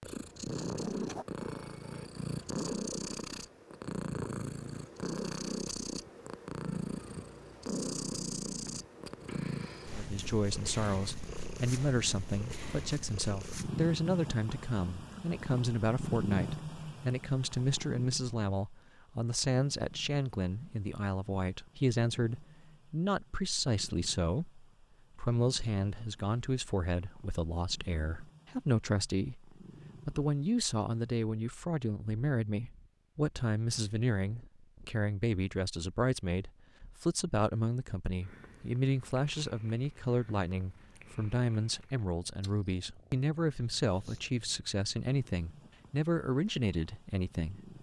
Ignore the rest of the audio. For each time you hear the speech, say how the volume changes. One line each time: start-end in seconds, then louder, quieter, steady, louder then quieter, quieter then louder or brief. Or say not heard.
9.9-47.7 steady.